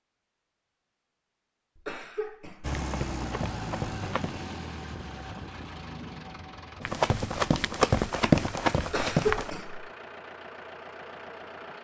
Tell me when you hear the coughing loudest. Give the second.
9 s.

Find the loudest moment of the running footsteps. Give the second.
8 s.